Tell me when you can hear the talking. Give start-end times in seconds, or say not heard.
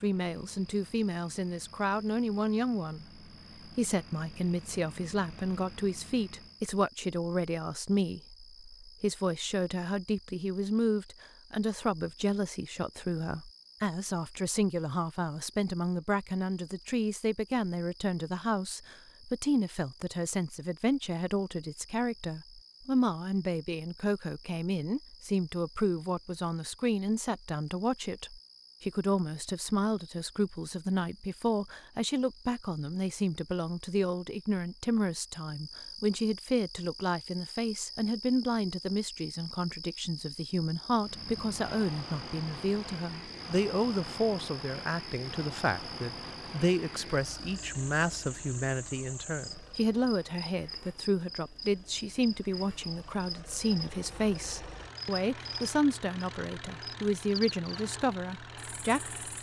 0.0-59.3.